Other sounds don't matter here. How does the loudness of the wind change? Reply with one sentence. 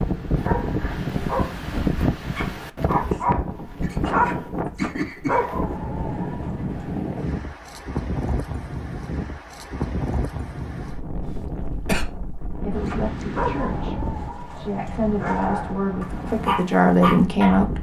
The loudness of the wind goes down.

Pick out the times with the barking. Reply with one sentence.
You can hear the barking from 0.2 to 6.9 s and from 12.8 to 17.6 s.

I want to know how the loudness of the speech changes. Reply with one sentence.
The volume of the speech goes down, then up.